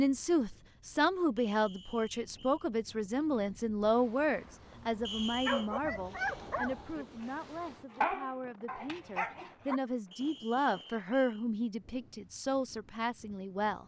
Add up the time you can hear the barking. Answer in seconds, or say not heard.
5 s.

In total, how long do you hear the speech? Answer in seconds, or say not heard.
14 s.